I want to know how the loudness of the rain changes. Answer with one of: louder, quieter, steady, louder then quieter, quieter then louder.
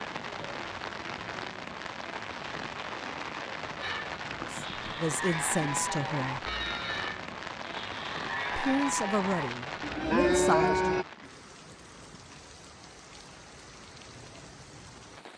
quieter.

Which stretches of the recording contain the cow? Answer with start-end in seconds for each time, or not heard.
3.8-11.1.